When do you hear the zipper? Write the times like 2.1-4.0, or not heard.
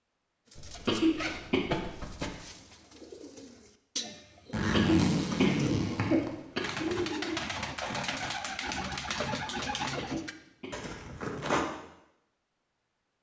0.6-2.4, 4.5-6.3, 10.7-11.7.